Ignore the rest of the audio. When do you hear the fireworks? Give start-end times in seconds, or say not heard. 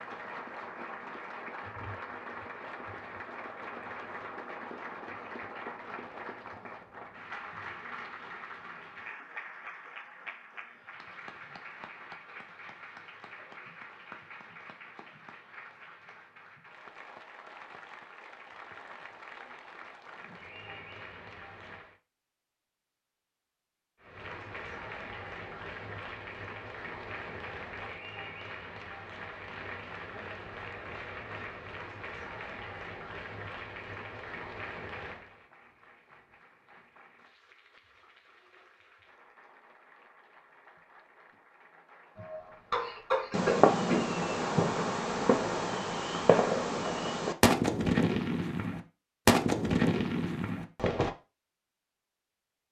43.3-51.1.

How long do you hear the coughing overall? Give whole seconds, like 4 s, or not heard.
2 s.